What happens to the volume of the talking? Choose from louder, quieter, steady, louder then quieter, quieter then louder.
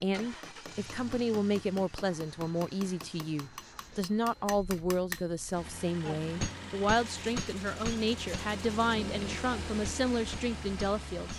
steady.